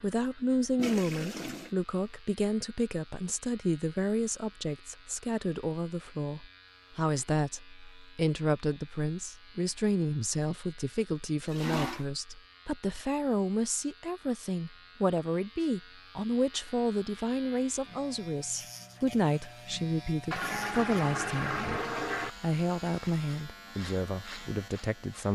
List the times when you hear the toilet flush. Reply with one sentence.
The toilet flush can be heard from 0.8 to 1.7 s, from 11.4 to 12.1 s and from 20.3 to 22.3 s.